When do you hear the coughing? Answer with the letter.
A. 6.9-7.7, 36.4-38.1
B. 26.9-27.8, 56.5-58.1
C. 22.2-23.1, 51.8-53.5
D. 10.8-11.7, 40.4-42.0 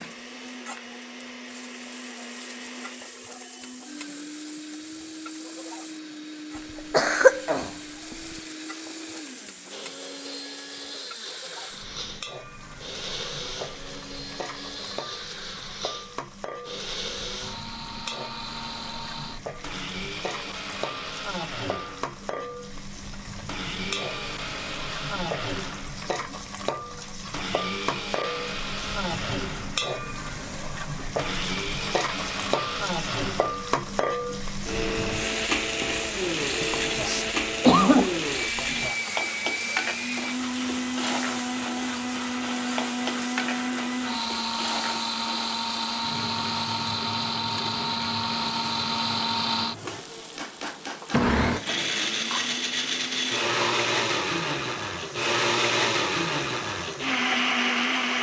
A.